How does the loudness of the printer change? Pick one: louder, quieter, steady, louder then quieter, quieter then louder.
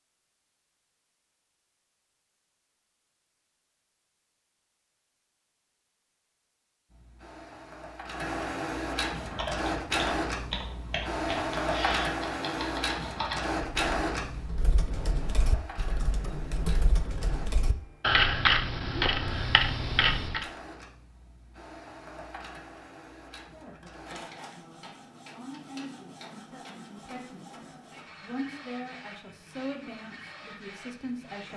quieter.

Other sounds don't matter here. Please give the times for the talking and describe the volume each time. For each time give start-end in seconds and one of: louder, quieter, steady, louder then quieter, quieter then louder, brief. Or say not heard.
23.4-31.5 louder.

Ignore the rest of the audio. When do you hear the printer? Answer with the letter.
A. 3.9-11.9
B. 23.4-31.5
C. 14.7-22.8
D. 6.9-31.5
D.